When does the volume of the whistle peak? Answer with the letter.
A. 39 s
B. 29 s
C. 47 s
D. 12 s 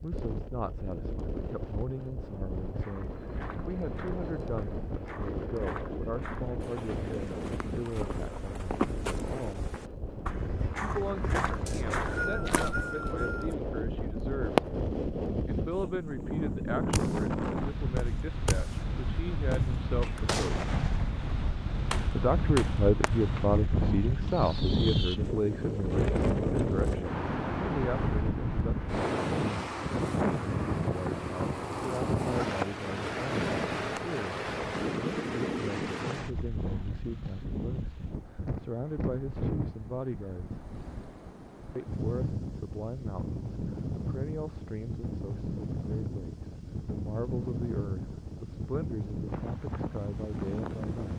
D.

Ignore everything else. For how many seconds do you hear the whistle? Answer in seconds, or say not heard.
2 s.